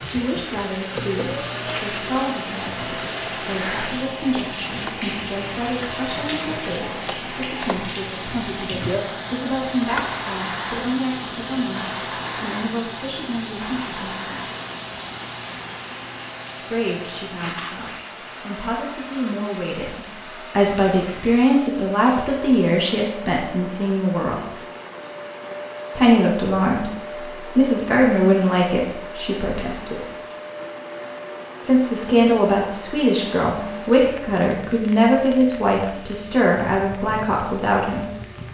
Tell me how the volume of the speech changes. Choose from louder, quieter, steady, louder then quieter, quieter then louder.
louder.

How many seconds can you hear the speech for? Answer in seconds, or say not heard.
33 s.